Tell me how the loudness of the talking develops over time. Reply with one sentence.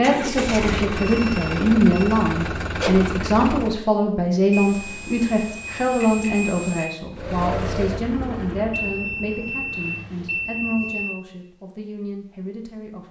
The volume of the talking goes down.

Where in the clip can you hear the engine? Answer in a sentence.
You can hear the engine from 0.0 to 3.9 s and from 7.1 to 10.4 s.